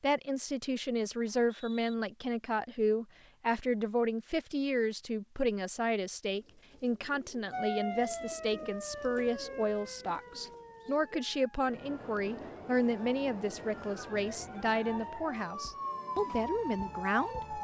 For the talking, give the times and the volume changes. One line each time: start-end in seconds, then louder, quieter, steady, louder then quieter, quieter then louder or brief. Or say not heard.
0.0-17.5 steady.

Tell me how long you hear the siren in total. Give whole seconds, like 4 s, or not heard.
10 s.